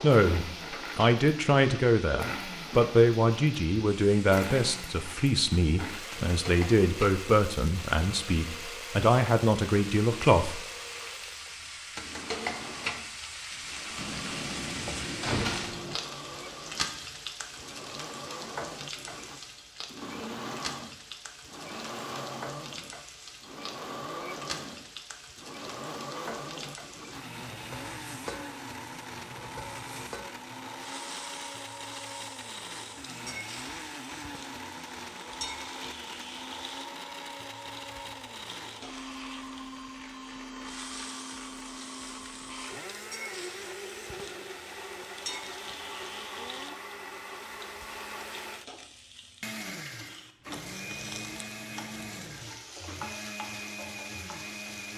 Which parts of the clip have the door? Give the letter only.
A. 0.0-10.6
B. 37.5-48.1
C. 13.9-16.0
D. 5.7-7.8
C.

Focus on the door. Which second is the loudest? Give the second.
15 s.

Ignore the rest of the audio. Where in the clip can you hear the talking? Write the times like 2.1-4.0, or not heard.
0.0-10.6.